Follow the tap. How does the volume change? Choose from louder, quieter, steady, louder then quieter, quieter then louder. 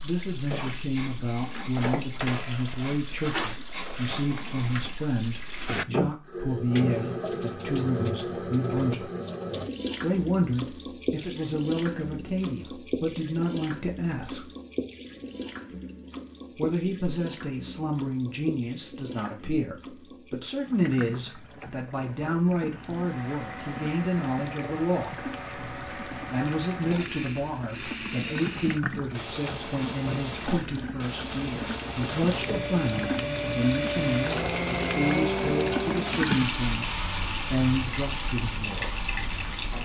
quieter then louder.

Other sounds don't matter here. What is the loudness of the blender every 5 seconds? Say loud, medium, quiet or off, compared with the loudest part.
off, off, off, off, medium, medium, loud, loud.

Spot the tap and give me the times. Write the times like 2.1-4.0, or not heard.
0.0-39.7.